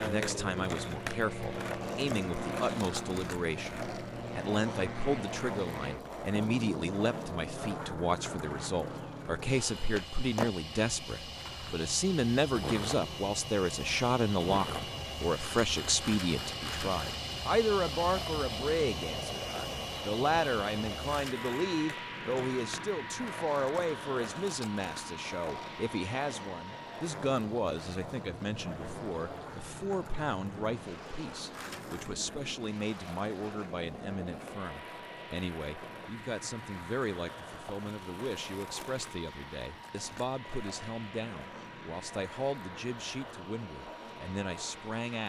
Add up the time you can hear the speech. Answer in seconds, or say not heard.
45 s.